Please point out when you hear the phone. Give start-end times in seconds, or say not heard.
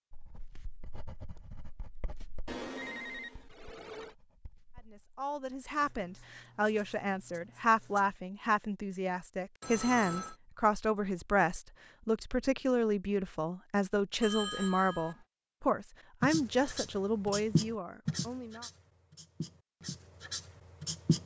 2.5-4.2, 9.6-10.3, 14.2-15.2.